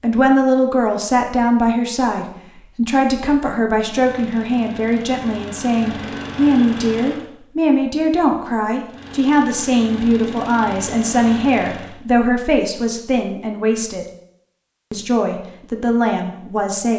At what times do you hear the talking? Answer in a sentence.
The talking can be heard from 0.0 to 14.1 s and from 14.9 to 16.9 s.